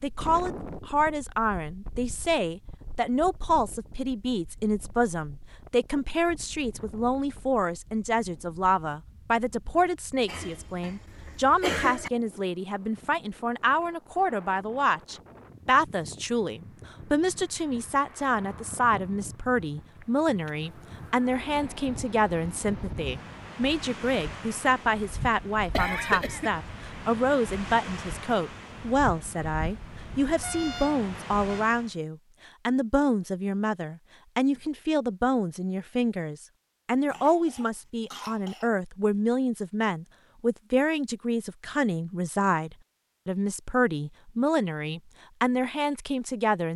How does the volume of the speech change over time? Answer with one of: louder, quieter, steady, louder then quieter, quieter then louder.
steady.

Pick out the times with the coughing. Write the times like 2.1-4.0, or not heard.
10.2-12.1, 25.7-26.6, 37.1-38.7.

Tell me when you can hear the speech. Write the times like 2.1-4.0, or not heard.
0.0-46.7.